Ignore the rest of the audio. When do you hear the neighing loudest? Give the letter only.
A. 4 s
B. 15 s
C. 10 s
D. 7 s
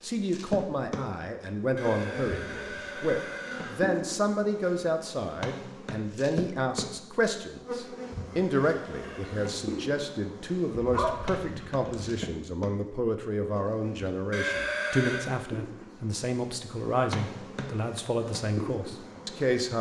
B.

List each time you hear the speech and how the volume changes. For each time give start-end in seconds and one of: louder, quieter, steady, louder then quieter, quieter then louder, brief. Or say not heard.
0.0-19.7 steady.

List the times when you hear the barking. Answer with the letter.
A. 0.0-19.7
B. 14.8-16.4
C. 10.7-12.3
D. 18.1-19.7
C.